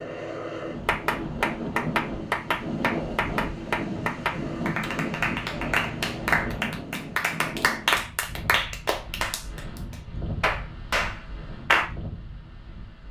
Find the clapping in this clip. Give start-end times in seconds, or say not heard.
0.8-11.9.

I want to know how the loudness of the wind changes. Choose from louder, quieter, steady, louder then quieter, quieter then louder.
quieter.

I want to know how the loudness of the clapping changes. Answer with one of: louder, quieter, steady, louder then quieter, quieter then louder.
steady.